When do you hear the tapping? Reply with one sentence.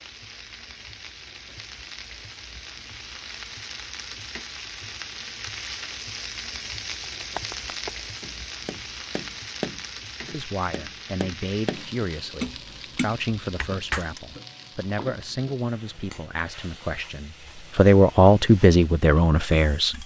You can hear the tapping from 7.0 to 14.1 s.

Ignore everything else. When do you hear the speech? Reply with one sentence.
The speech can be heard from 10.2 to 20.0 s.